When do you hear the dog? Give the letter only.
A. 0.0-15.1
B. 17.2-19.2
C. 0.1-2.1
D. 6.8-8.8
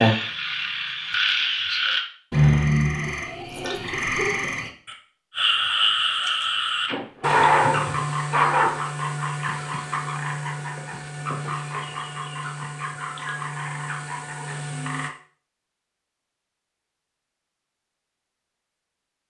D.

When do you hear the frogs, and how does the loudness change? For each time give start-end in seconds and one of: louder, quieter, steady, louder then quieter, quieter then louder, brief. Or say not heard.
0.0-15.1 quieter.